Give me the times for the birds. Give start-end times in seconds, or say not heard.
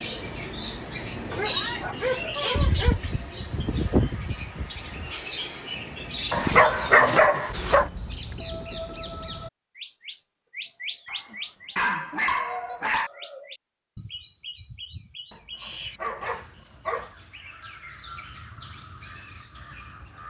0.0-20.2.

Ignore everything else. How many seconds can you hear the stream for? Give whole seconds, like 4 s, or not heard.
not heard.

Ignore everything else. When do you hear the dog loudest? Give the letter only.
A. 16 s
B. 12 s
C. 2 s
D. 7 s
D.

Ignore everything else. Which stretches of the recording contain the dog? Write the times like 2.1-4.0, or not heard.
1.3-3.1, 6.3-7.8, 11.1-13.1, 15.3-17.1.